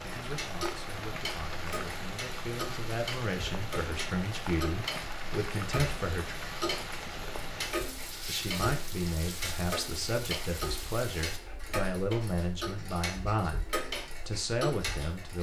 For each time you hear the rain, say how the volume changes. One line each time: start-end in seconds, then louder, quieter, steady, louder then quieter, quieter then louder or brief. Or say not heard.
0.0-11.4 steady.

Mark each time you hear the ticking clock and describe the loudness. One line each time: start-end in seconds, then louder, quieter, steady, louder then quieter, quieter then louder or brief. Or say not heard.
0.0-15.3 steady.